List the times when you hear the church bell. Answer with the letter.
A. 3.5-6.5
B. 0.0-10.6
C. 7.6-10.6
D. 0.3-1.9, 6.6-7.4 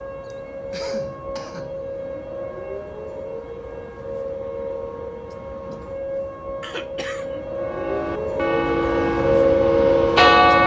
C.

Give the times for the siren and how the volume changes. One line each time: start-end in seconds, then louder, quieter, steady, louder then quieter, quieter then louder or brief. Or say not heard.
0.0-10.6 louder.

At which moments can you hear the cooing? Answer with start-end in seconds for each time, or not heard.
not heard.